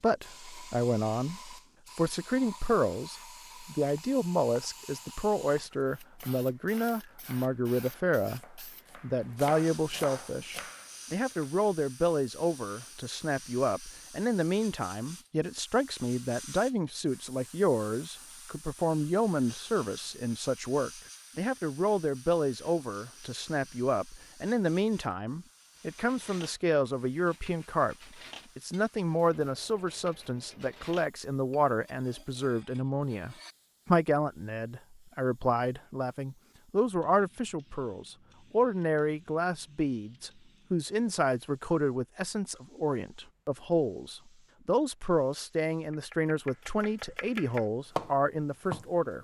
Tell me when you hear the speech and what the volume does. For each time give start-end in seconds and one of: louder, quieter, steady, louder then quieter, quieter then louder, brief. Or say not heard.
0.0-27.9 steady
28.6-49.1 steady.